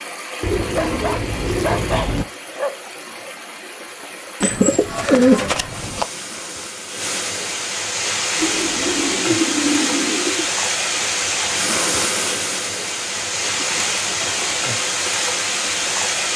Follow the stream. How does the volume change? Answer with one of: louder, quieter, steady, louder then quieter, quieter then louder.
louder.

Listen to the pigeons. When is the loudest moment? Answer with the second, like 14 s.
5 s.